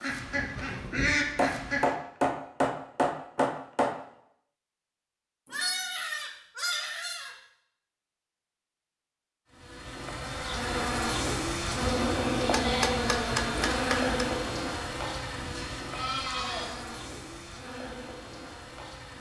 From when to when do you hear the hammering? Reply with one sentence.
You can hear the hammering from 1.4 to 4.0 s and from 12.5 to 14.1 s.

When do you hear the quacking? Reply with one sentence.
The quacking can be heard from 0.0 to 1.9 s.